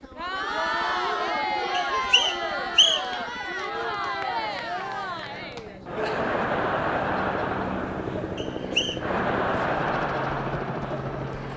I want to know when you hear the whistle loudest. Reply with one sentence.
The volume of the whistle peaks at 3 seconds.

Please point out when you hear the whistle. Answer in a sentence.
You can hear the whistle from 1.7 to 3.2 s and from 8.3 to 9.0 s.